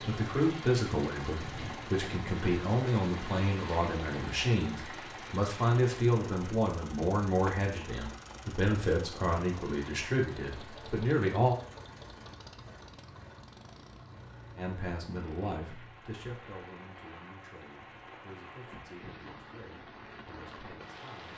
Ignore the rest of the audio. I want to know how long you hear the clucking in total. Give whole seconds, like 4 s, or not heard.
not heard.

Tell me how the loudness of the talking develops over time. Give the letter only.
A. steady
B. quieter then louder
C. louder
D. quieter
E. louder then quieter
D.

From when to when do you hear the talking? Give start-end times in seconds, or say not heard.
0.0-11.6, 14.6-21.3.